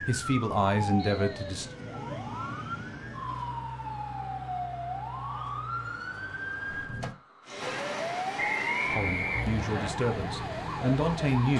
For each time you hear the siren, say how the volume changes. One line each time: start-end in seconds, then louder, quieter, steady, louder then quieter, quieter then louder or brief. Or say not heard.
0.0-11.5 steady.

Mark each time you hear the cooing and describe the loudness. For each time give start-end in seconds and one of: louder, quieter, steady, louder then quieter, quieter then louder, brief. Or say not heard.
not heard.